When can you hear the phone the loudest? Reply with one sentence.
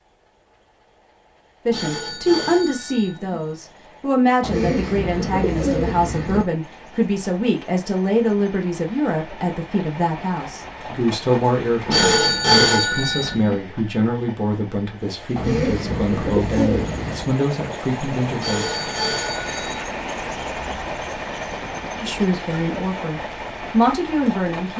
The loudest moment of the phone is at 13 seconds.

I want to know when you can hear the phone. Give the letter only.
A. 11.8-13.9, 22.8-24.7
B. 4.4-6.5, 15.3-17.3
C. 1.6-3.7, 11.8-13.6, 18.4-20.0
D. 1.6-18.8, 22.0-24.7
C.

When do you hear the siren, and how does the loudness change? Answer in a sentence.
The siren can't be heard in this clip.